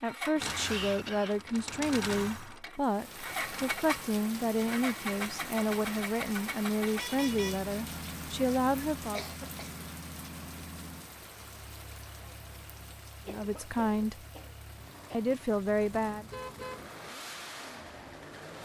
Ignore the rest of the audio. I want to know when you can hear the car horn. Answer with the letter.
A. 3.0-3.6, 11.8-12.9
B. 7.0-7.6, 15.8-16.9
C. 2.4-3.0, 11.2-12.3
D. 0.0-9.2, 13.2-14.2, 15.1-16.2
B.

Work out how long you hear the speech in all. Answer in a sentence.
The speech can be heard for 11 seconds in total.